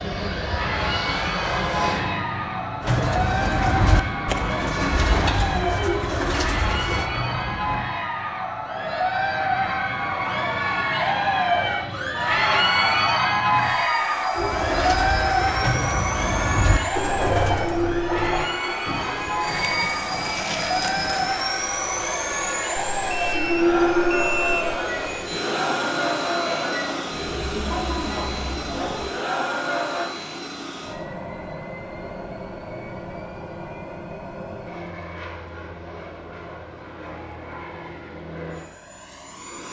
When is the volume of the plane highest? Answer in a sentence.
The volume of the plane peaks at 24 seconds.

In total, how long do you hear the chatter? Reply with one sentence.
You can hear the chatter for 30 seconds altogether.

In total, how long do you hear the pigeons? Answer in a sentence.
The pigeons can be heard for 12 seconds in total.